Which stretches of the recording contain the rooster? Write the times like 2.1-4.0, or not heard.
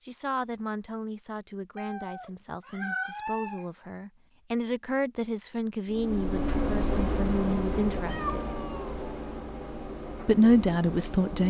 not heard.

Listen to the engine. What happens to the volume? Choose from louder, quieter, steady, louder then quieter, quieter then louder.
quieter.